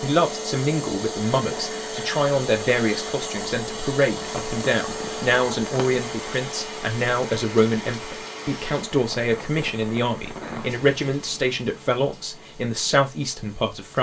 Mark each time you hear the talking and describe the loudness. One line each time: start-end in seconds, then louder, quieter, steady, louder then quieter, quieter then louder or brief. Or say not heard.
0.0-13.9 steady.